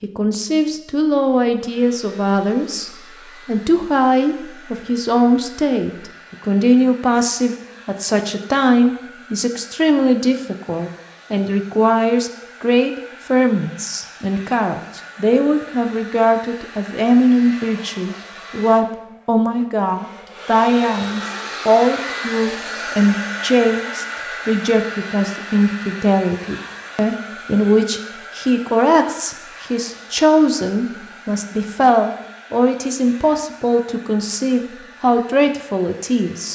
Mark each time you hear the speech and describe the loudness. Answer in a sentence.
You can hear the speech from 0.0 to 36.5 s, at a steady volume.